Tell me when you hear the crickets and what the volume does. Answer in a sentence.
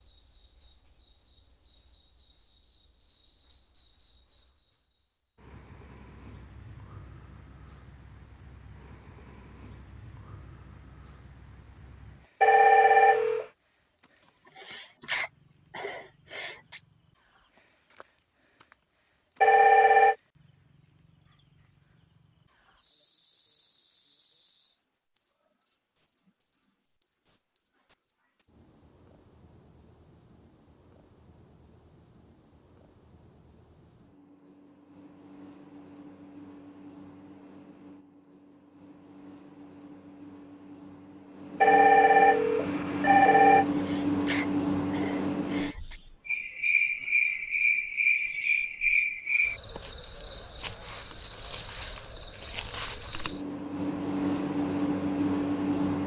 You can hear the crickets from 0.0 to 56.0 s, getting louder.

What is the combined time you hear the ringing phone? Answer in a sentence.
The ringing phone can be heard for 4 seconds in total.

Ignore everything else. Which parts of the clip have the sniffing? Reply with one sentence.
The sniffing can be heard from 14.3 to 16.8 s and from 43.8 to 46.0 s.